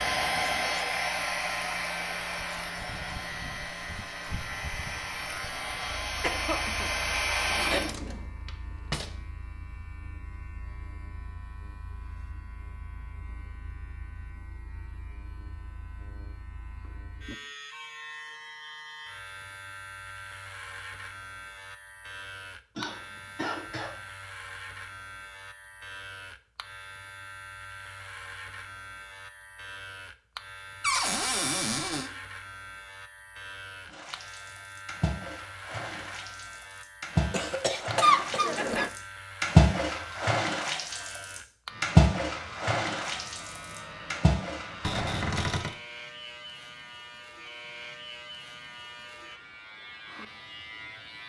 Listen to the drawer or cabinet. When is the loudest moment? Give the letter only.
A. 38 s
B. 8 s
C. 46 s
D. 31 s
D.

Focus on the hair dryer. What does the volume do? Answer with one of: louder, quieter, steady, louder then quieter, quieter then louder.
quieter then louder.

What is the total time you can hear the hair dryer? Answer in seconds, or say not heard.
8 s.